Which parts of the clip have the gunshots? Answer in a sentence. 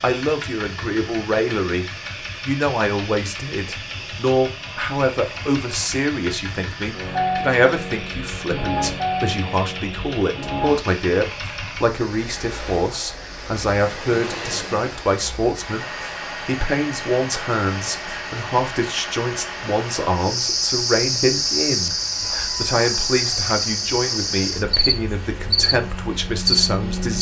You can't hear the gunshots here.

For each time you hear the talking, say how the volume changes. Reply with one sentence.
You can hear the talking from 0.0 to 27.1 s, at a steady volume.